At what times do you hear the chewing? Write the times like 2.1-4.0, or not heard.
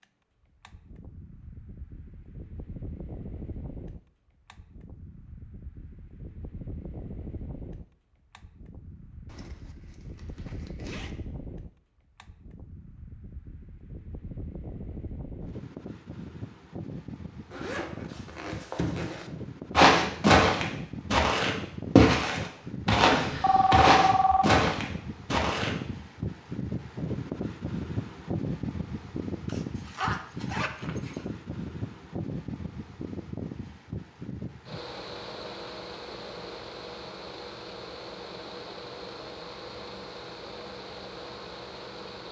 not heard.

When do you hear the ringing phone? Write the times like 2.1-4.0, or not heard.
23.1-24.6.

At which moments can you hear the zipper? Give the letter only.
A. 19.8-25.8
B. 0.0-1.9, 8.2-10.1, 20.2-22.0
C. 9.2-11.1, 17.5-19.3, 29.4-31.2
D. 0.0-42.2
C.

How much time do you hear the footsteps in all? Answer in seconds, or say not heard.
6 s.